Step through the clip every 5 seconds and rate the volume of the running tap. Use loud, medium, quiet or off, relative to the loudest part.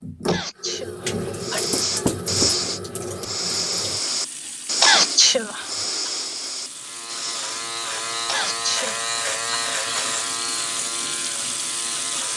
loud, medium, loud.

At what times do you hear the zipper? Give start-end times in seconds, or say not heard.
not heard.